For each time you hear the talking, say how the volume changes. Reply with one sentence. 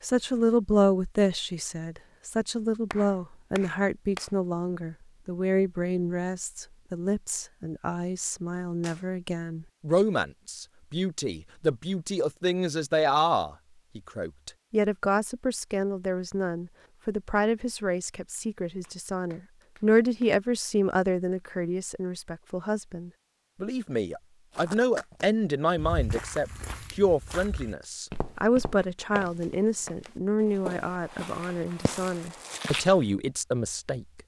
The talking can be heard from 0.0 to 34.2 s, at a steady volume.